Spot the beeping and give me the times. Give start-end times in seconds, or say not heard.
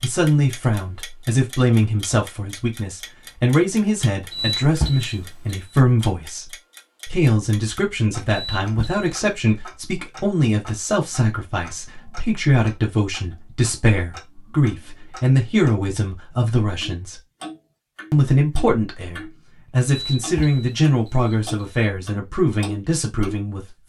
4.3-5.8, 8.2-9.1, 19.9-21.9.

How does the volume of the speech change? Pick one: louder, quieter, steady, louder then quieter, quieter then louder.
steady.